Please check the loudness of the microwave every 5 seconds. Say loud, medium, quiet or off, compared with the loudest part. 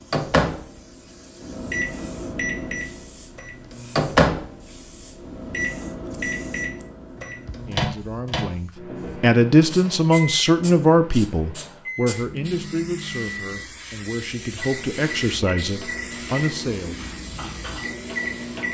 loud, medium, medium, medium.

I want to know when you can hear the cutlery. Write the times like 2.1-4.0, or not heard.
not heard.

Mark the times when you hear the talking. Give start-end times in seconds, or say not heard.
7.7-17.1.